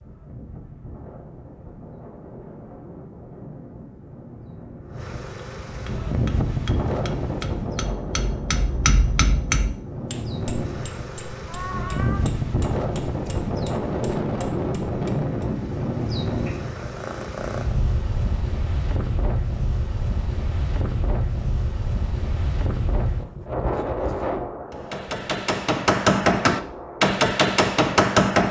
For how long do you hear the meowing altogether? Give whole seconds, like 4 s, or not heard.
2 s.